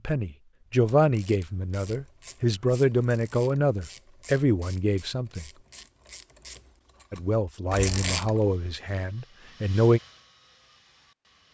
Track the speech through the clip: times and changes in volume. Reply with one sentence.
You can hear the speech from 0.1 to 5.5 s, getting quieter then louder; and briefly from 7.1 to 10.0 s.